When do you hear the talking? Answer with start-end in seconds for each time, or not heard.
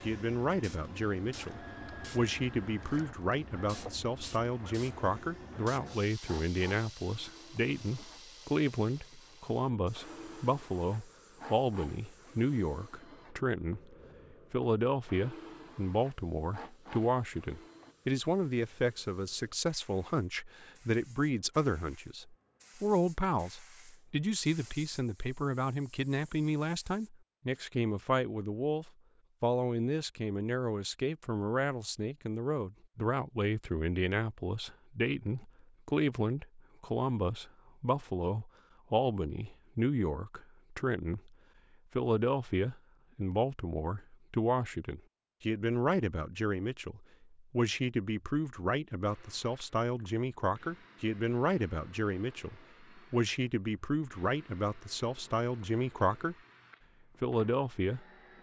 0.0-41.4, 42.0-56.4, 57.2-58.0.